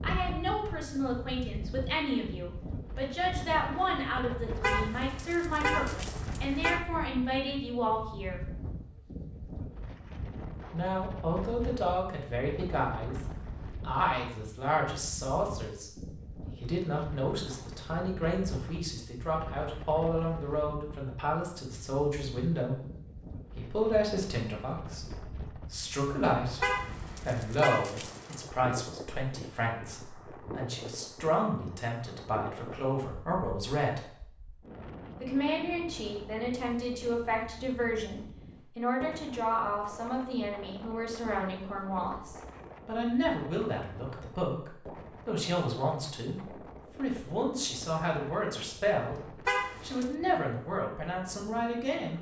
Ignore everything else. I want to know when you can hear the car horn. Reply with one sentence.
You can hear the car horn from 4.6 to 6.8 s, from 26.6 to 28.4 s and from 49.5 to 50.1 s.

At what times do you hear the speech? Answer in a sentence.
The speech can be heard from 0.0 to 8.5 s, from 10.7 to 22.8 s, from 23.6 to 34.1 s, from 35.2 to 49.2 s and from 49.8 to 52.1 s.